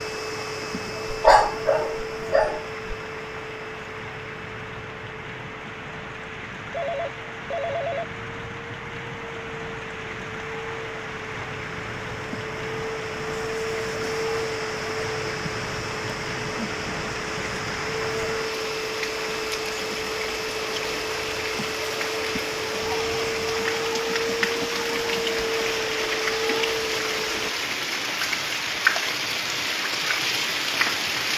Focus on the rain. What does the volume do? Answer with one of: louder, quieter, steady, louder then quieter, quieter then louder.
louder.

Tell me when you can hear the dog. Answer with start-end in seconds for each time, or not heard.
1.1-3.0.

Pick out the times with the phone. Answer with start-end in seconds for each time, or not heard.
6.7-8.1.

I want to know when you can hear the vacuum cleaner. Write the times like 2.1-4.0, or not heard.
0.0-27.6.